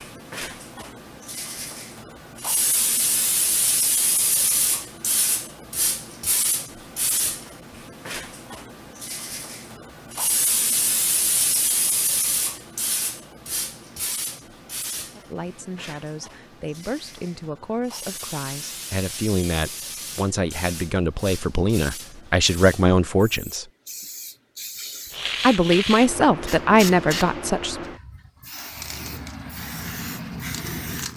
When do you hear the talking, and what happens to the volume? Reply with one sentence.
You can hear the talking from 15.2 to 23.6 s, getting louder; and briefly from 25.4 to 27.8 s.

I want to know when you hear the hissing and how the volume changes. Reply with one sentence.
The hissing can be heard from 0.0 to 31.1 s, getting quieter then louder.